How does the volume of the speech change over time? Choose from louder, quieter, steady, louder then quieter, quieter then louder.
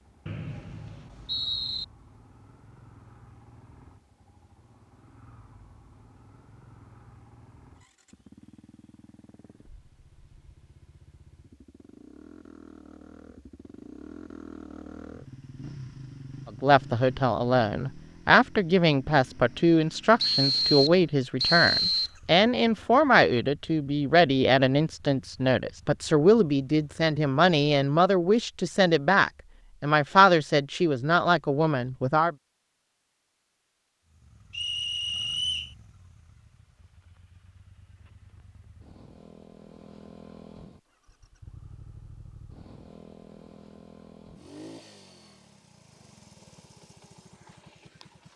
steady.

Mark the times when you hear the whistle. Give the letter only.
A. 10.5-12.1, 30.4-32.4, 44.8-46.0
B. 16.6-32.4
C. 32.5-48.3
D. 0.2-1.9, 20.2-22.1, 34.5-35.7
D.